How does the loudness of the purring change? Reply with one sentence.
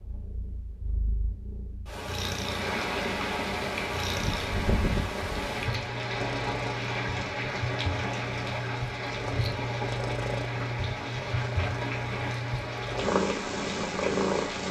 The volume of the purring goes up.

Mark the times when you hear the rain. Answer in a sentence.
You can hear the rain from 2.4 to 14.6 s.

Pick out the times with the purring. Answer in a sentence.
You can hear the purring from 0.0 to 14.6 s.